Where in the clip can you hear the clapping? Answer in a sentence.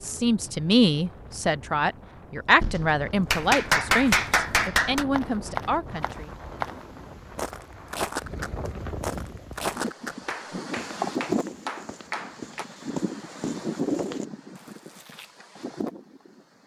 The clapping can be heard from 2.6 to 5.0 s and from 10.2 to 12.7 s.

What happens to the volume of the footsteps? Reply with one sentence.
The volume of the footsteps goes down.